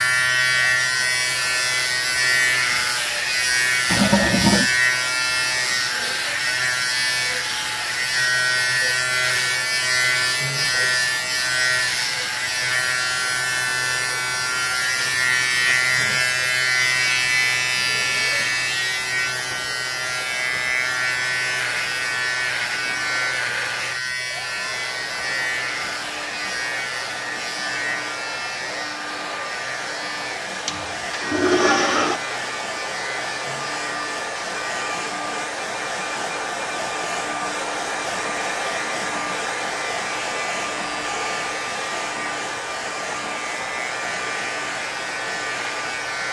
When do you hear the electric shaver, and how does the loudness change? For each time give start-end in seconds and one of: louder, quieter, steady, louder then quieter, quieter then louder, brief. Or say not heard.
0.0-46.2 quieter.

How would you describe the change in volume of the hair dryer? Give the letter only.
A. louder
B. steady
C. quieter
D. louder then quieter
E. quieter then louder
A.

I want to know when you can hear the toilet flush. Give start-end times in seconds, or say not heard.
3.9-4.7, 30.6-32.2.